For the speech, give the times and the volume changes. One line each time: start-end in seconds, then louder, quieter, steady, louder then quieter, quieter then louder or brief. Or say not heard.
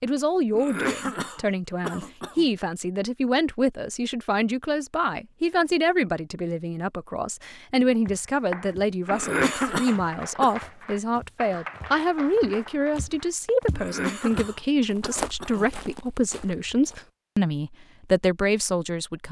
0.0-19.2 steady.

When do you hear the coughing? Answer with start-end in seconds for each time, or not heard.
0.5-2.5, 9.1-10.6, 13.7-15.8.